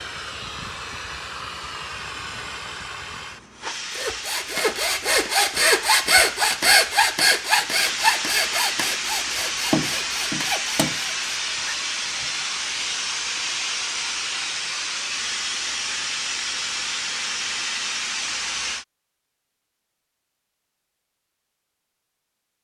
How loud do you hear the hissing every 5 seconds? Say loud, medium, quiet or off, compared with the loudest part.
medium, loud, loud, loud, off.